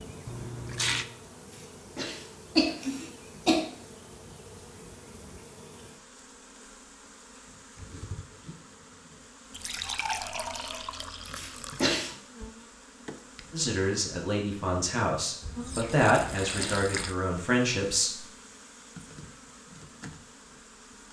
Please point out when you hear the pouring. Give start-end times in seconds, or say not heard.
0.2-1.1, 9.5-11.9, 15.4-17.1.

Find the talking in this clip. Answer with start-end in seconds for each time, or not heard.
13.5-18.2.